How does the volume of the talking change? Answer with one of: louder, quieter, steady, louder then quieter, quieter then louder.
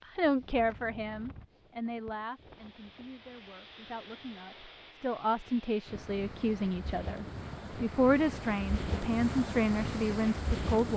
quieter then louder.